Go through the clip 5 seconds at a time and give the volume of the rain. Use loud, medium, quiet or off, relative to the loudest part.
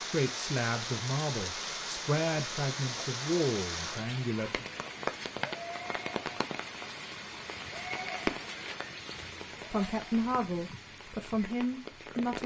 loud, loud, medium.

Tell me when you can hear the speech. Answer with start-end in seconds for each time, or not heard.
0.1-4.7, 9.7-12.4.